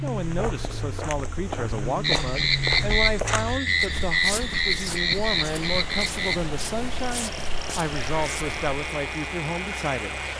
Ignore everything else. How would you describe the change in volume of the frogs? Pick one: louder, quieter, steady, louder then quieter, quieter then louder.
quieter.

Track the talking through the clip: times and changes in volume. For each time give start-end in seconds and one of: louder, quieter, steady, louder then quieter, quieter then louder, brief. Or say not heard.
0.0-10.2 steady.